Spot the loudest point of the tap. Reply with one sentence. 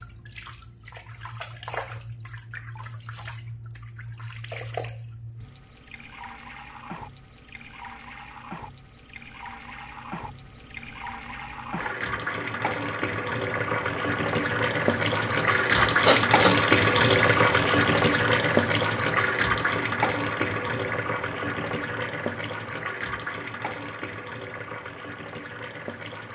The loudest moment of the tap is at 17 seconds.